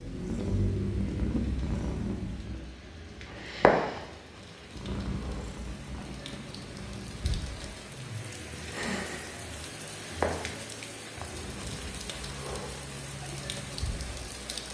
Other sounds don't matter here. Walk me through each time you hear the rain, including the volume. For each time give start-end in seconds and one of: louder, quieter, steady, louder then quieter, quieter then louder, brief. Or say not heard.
0.0-14.6 louder.